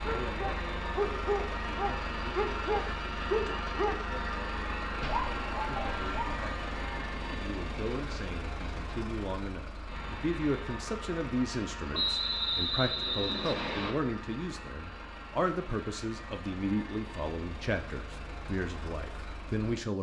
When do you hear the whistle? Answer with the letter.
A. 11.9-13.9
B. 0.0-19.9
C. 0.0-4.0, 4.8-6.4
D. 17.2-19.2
A.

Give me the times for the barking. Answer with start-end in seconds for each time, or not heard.
0.0-4.0, 4.8-6.4.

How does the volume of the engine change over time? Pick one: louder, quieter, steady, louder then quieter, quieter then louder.
quieter.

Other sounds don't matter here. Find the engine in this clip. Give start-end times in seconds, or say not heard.
0.0-19.9.